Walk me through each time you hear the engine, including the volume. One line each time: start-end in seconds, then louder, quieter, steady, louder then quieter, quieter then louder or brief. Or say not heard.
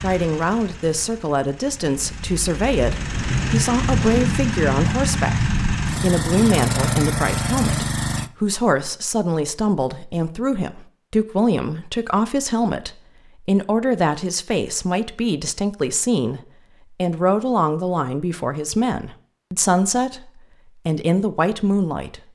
0.0-8.3 louder.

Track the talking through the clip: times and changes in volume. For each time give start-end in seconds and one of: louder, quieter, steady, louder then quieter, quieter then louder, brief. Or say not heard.
0.0-22.2 steady.